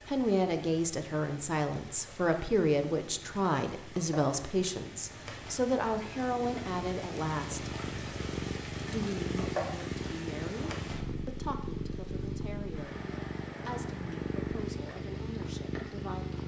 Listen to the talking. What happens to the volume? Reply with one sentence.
The loudness of the talking goes down.